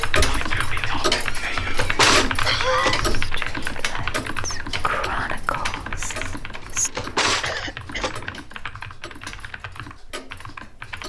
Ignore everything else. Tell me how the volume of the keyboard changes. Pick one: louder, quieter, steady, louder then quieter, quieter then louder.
quieter.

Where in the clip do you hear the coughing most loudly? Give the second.
3 s.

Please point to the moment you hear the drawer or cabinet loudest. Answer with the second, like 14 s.
2 s.